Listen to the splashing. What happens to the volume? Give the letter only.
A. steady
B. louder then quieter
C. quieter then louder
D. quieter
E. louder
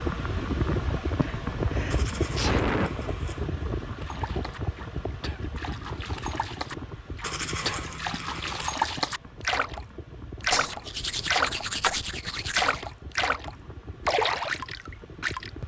E.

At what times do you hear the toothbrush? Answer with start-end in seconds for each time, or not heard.
1.9-3.5, 7.2-8.8, 10.5-12.9.